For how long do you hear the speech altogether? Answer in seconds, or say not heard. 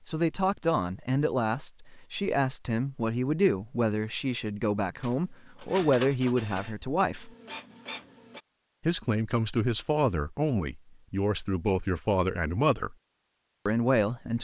12 s.